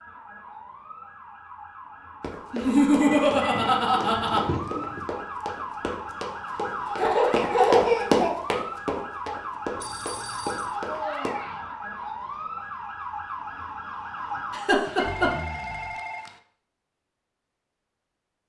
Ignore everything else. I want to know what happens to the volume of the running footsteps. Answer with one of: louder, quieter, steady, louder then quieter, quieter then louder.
louder then quieter.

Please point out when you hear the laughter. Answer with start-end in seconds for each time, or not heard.
2.5-4.4, 7.0-8.3, 14.5-15.3.